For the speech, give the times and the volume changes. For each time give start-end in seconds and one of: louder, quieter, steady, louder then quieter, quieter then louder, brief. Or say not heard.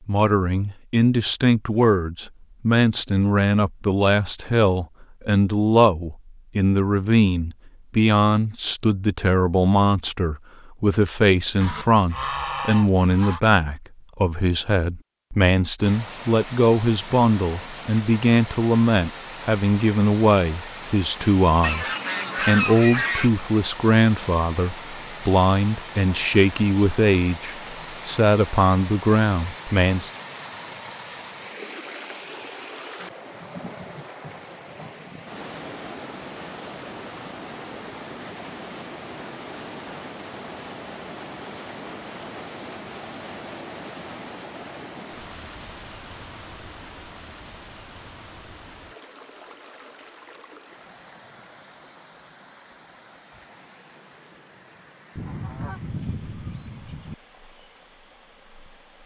0.1-30.1 steady.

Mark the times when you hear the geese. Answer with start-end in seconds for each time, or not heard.
11.6-13.4, 21.6-23.3, 55.1-57.1.